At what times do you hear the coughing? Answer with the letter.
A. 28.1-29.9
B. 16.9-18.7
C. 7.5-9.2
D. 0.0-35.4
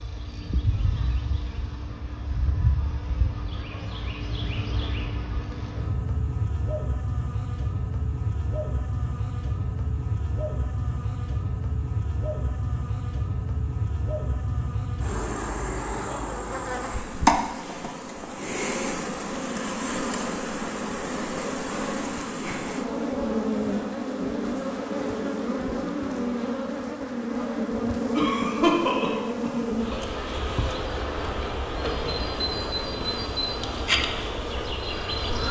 A.